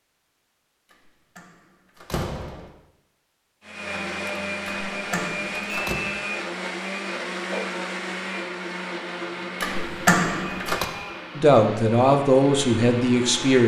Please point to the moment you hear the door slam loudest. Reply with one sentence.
The loudest moment of the door slam is at 10 seconds.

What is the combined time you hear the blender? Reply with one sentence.
The blender can be heard for 10 seconds in total.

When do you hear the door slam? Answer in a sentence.
The door slam can be heard from 1.4 to 2.7 s, from 4.7 to 6.0 s and from 9.6 to 10.8 s.